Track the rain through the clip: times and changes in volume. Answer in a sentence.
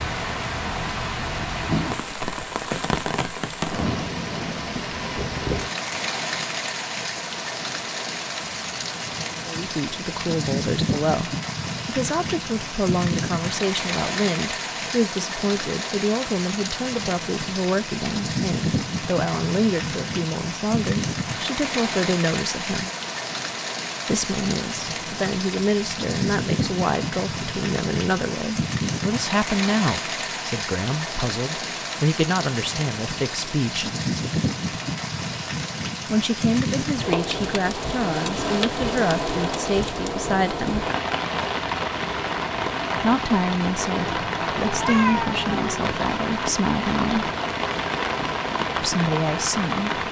The rain can be heard from 0.0 to 50.0 s, at a steady volume.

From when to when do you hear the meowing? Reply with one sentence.
The meowing can be heard from 44.0 to 46.0 s.